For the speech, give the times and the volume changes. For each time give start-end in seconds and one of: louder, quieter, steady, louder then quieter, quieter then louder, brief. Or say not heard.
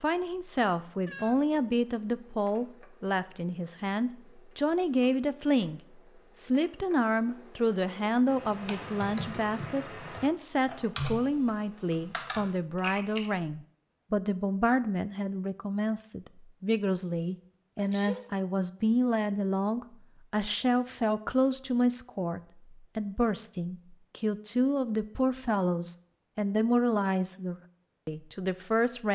0.0-29.1 steady.